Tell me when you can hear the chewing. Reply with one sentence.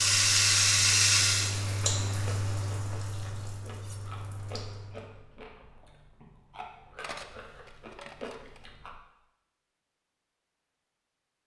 You can hear the chewing from 1.6 to 9.0 s.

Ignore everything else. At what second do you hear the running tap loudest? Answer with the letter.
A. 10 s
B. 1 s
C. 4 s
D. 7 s
B.